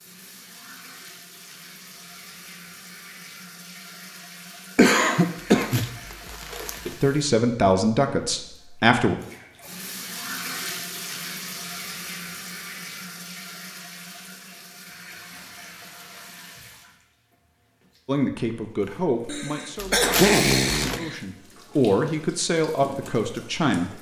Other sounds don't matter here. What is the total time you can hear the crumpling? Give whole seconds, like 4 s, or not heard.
3 s.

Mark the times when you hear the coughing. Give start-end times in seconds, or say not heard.
4.8-5.8, 19.2-21.1.